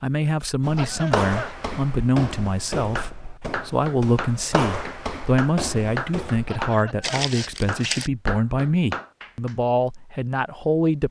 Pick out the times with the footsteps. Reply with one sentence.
The footsteps can be heard from 0.6 to 8.1 s.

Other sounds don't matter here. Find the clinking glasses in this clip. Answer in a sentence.
The clinking glasses can't be heard in this clip.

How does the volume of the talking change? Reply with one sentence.
The loudness of the talking stays about the same.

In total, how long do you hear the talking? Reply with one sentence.
The talking can be heard for 11 seconds in total.